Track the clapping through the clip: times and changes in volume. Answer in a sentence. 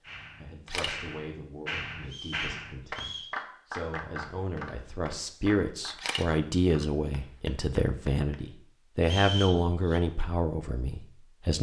The clapping can be heard from 0.0 to 8.4 s, getting quieter.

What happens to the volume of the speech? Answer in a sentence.
The loudness of the speech goes up.